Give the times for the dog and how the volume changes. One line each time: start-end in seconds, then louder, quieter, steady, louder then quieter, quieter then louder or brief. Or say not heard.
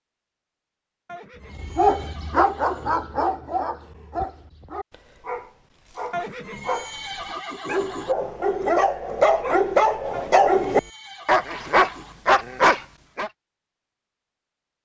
1.5-13.3 quieter then louder.